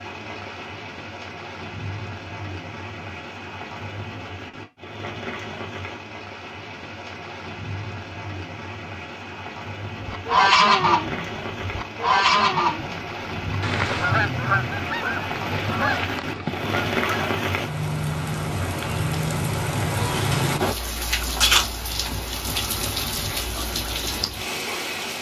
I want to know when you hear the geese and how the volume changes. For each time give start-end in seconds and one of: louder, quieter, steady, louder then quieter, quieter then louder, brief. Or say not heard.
10.1-17.4 quieter.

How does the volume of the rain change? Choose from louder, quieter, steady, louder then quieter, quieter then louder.
louder.